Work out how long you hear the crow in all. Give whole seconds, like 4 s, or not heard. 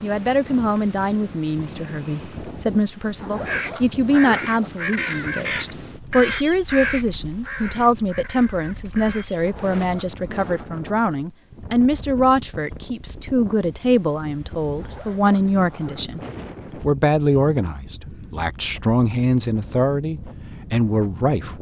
6 s.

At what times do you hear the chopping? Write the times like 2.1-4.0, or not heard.
not heard.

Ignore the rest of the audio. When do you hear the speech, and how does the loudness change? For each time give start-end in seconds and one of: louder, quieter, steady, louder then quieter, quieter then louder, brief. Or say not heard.
0.0-21.5 steady.